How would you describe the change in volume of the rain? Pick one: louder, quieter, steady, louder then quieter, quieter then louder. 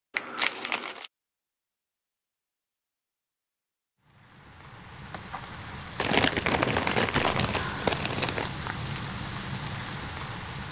louder.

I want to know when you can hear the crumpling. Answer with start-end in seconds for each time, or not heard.
0.1-1.1, 6.0-8.5.